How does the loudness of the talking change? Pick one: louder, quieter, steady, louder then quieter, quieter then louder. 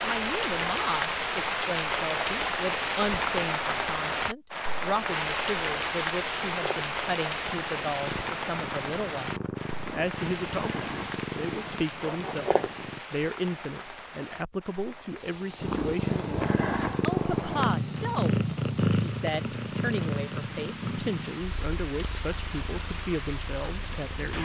steady.